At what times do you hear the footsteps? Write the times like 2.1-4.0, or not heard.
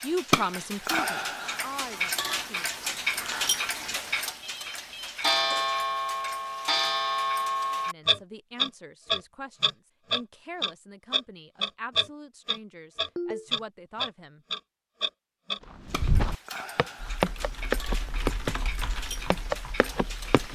15.8-18.6, 19.3-20.5.